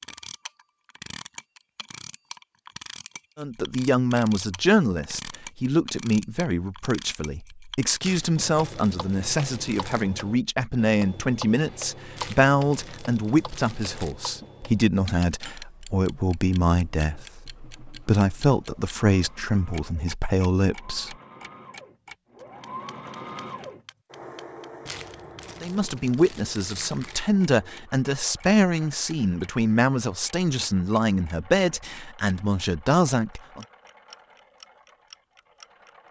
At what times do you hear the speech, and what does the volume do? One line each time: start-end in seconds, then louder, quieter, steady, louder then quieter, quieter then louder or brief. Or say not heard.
3.4-21.1 steady
25.6-33.6 steady.